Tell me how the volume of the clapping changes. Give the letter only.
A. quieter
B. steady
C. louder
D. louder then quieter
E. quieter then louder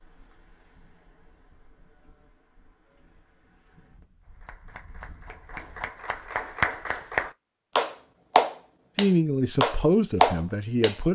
C.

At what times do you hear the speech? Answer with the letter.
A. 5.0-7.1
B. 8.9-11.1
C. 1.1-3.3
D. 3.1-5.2
B.